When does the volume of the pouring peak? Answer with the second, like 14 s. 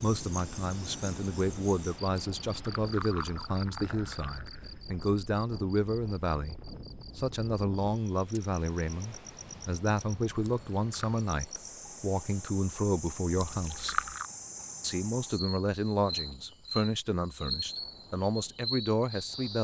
14 s.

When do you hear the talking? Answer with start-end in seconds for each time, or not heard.
0.0-6.5, 7.2-14.0, 14.8-19.5.